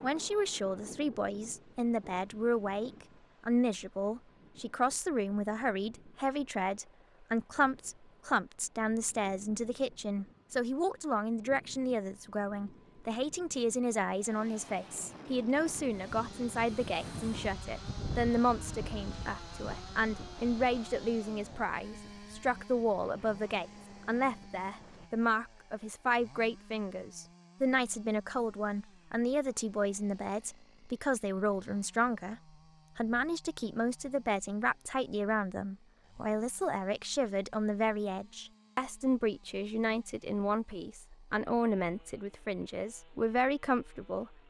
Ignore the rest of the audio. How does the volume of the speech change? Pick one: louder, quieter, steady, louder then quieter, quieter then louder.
steady.